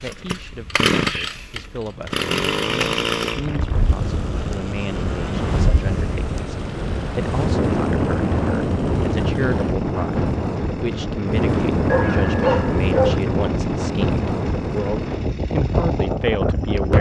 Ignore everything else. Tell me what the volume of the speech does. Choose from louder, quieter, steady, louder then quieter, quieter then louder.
louder.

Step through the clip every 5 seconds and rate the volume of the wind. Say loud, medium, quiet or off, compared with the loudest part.
medium, loud, loud, loud.